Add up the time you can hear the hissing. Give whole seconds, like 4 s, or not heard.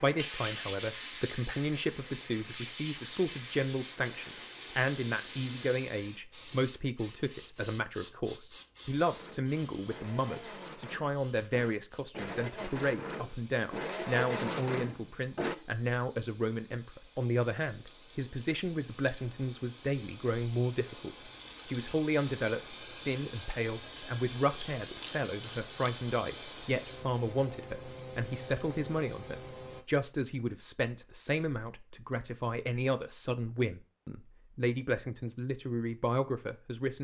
30 s.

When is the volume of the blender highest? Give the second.
14 s.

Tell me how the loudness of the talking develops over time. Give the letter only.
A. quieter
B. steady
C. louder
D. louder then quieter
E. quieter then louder
B.